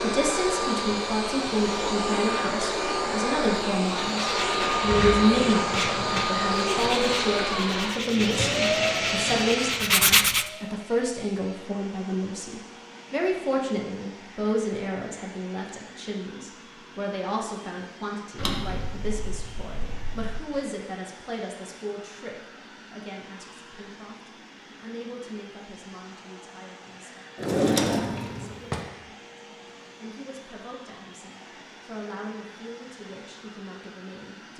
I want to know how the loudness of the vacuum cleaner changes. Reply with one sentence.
The volume of the vacuum cleaner goes down.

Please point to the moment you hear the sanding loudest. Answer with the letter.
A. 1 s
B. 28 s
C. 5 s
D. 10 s
D.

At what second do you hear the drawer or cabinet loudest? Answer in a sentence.
The loudest moment of the drawer or cabinet is at 28 seconds.